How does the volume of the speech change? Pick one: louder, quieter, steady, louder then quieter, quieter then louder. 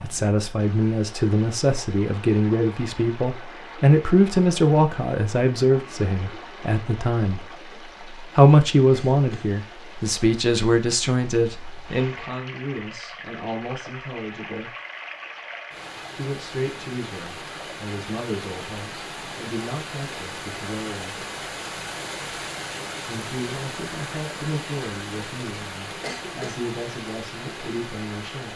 quieter.